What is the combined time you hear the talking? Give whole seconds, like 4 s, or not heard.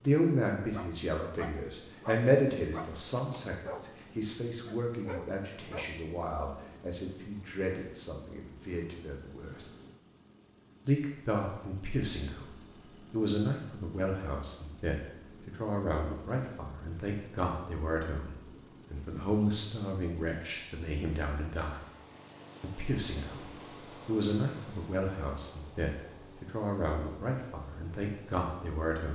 26 s.